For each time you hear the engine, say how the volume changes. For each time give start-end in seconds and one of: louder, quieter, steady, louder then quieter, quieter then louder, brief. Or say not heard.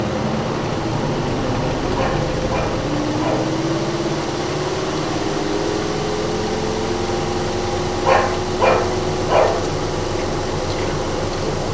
0.0-11.6 steady.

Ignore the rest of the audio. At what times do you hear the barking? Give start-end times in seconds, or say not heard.
1.9-3.5, 8.1-9.7.